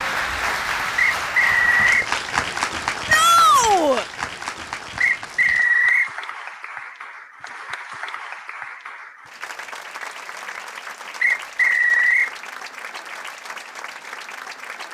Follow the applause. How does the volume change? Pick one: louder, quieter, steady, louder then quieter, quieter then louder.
quieter.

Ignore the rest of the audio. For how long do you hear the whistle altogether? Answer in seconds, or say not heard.
3 s.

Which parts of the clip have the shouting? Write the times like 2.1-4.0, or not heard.
3.0-4.0.